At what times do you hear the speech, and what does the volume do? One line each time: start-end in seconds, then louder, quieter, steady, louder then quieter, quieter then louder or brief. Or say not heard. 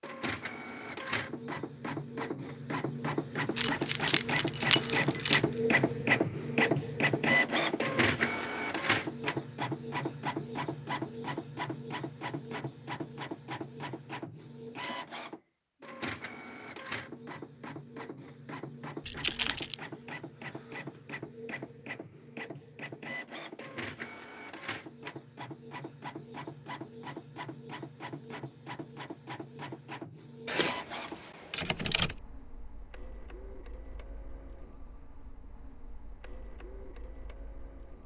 not heard.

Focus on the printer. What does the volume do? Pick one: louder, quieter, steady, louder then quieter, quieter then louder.
quieter.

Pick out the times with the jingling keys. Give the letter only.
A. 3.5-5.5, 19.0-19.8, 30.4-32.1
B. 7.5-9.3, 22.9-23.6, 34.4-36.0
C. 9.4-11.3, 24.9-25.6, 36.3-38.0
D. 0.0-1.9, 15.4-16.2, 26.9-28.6
A.